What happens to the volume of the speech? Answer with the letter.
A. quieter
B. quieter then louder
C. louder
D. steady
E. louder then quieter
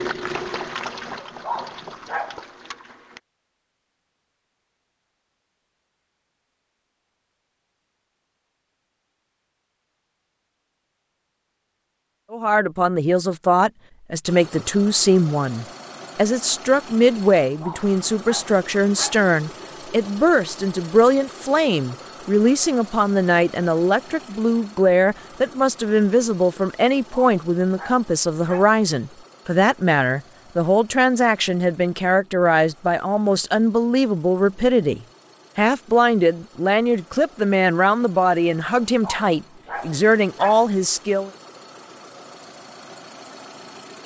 D.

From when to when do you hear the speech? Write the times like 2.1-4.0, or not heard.
12.3-41.3.